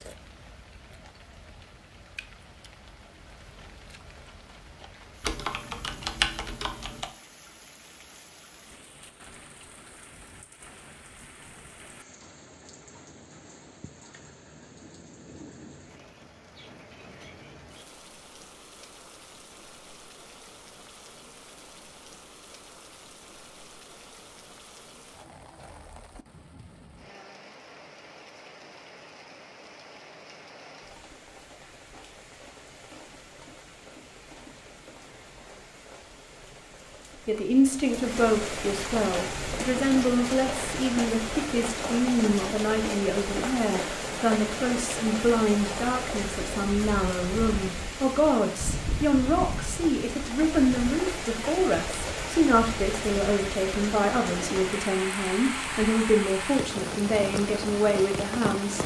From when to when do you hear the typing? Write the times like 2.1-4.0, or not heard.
5.2-7.1.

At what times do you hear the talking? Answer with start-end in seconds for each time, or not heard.
37.2-58.8.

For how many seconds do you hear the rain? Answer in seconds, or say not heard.
59 s.